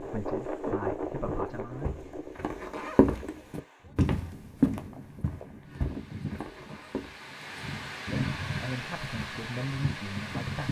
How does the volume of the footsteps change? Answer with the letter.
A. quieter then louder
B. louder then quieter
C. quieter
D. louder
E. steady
B.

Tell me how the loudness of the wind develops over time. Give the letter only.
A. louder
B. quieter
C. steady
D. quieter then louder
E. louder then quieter
D.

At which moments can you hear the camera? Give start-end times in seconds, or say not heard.
not heard.